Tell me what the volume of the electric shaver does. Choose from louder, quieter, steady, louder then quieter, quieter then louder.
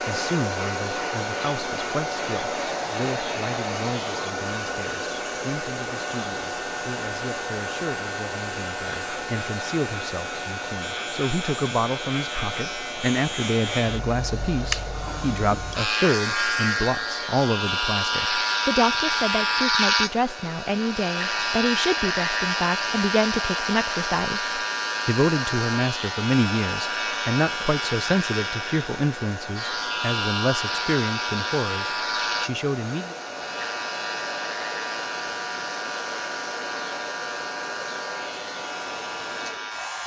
louder then quieter.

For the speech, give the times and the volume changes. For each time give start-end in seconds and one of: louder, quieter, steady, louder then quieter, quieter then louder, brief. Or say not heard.
0.1-33.1 louder.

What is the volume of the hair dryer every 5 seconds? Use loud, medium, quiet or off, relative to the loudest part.
loud, loud, medium, medium, medium, medium, medium, medium.